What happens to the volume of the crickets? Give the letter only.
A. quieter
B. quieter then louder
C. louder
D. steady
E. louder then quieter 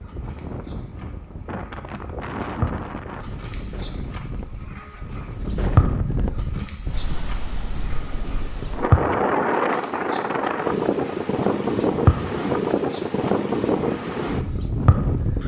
C.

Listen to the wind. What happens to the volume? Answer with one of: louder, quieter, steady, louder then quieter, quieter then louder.
louder.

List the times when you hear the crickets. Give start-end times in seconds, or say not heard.
0.0-15.4.